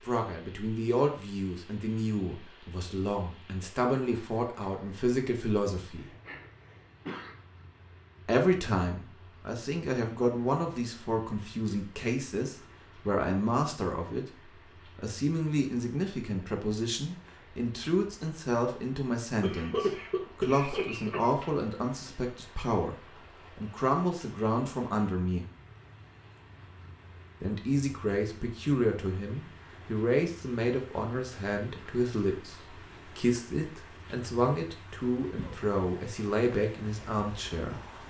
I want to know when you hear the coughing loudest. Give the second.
20 s.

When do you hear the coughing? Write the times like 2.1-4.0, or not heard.
6.0-7.3, 19.4-21.4, 35.4-35.8.